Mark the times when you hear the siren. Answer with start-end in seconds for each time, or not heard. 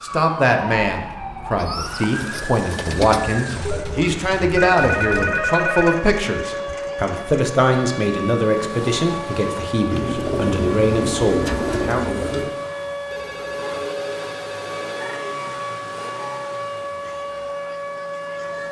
0.0-18.6.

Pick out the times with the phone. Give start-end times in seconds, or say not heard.
3.6-6.0, 13.1-15.3.